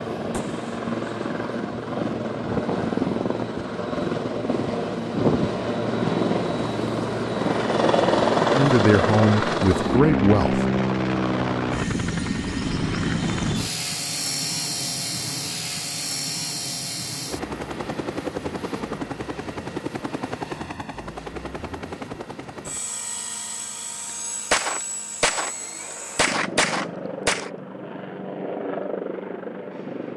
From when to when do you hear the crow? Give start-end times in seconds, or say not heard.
not heard.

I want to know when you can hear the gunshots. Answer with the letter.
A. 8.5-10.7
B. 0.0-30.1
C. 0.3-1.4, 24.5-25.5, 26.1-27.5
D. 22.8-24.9
C.